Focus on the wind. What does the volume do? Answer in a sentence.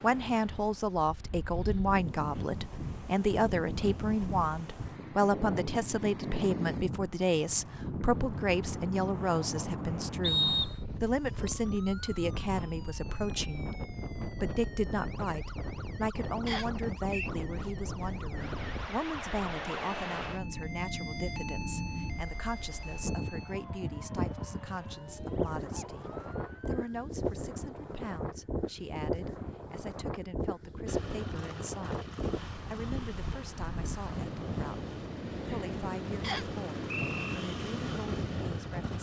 The loudness of the wind stays about the same.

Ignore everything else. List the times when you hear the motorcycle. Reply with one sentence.
The motorcycle can be heard from 30.9 to 38.9 s.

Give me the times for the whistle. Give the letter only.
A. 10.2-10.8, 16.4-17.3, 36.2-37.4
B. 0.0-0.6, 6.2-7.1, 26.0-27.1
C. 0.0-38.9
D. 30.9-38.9
A.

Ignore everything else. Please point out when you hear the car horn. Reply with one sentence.
You can't hear the car horn here.